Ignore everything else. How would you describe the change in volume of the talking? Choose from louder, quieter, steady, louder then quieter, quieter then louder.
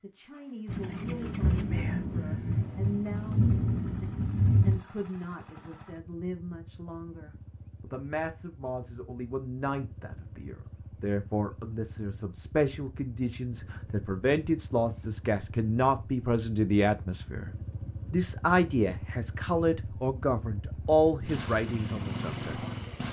louder.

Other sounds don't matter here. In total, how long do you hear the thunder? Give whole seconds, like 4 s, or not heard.
4 s.